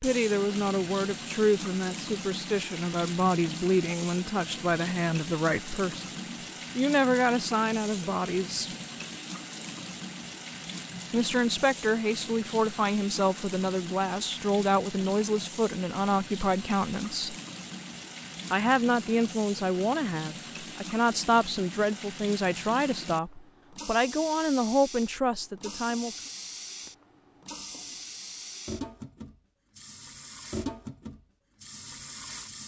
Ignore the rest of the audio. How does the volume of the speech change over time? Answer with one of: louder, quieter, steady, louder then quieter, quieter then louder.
steady.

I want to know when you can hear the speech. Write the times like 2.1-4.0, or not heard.
0.0-8.7, 11.1-17.4, 18.5-26.1.